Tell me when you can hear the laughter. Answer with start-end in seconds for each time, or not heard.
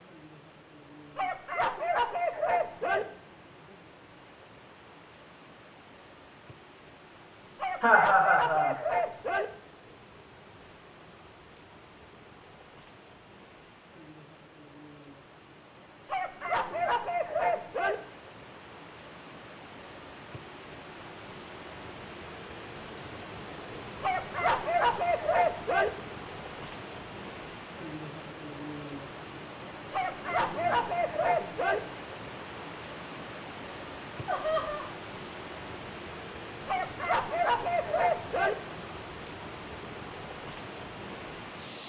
7.8-8.8, 34.2-34.9.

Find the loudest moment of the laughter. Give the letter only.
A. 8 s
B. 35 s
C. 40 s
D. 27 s
A.